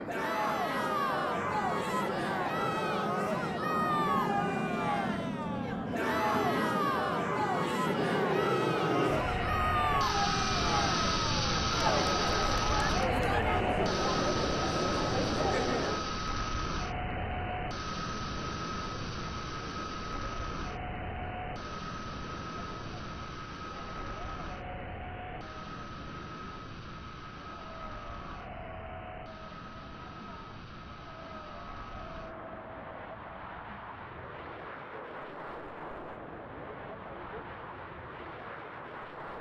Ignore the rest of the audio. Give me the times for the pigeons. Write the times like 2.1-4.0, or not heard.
not heard.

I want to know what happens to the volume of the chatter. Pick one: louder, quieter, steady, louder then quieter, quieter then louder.
quieter.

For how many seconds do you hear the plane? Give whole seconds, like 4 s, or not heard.
39 s.